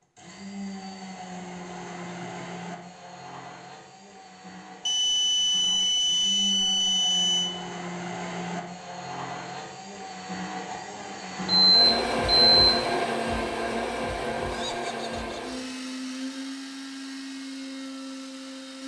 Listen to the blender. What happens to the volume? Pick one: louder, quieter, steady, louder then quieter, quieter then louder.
louder then quieter.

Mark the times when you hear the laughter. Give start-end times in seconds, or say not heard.
2.0-2.6, 14.4-15.6.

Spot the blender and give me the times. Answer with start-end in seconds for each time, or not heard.
0.1-18.8.